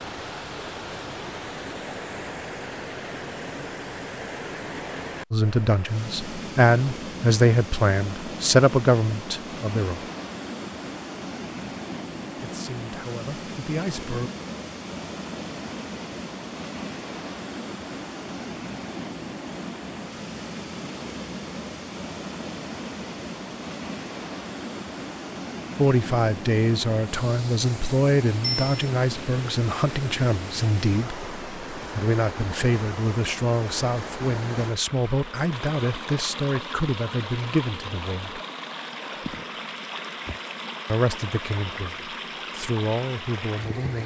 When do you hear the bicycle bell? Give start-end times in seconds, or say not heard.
28.4-28.9.